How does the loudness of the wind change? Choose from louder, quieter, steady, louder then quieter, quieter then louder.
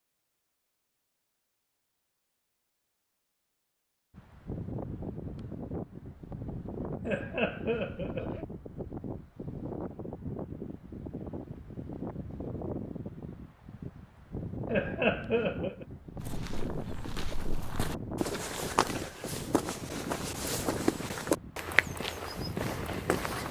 steady.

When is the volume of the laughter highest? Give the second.
15 s.